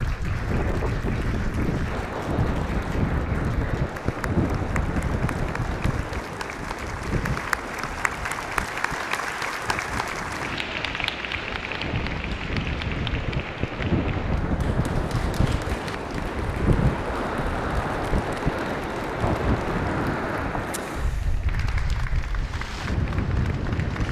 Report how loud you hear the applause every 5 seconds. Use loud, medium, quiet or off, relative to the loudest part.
medium, loud, loud, medium, medium.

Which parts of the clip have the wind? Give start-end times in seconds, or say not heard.
0.0-24.0.